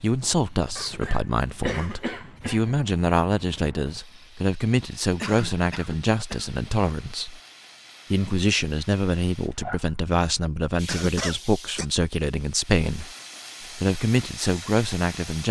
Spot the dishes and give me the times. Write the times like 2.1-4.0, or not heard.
not heard.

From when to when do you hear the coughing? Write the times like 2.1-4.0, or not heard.
0.8-2.8, 5.2-6.5, 10.8-11.8.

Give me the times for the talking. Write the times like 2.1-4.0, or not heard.
0.0-7.4, 8.1-13.1, 13.8-15.4.